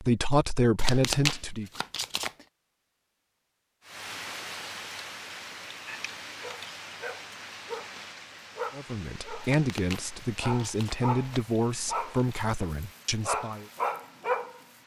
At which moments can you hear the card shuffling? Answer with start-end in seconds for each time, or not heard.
0.8-2.5, 9.4-11.4.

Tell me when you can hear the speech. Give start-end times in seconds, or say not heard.
0.0-1.7, 8.8-13.7.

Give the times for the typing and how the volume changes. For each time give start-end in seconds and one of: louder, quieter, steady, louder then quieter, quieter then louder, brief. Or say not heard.
not heard.